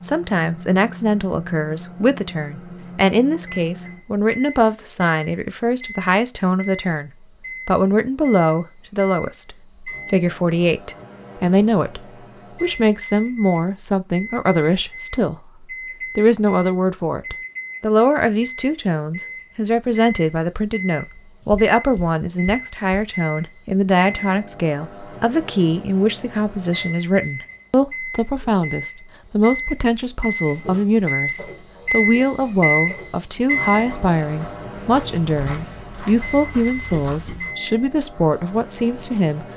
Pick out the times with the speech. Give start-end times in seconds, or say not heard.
0.0-12.0, 12.6-39.5.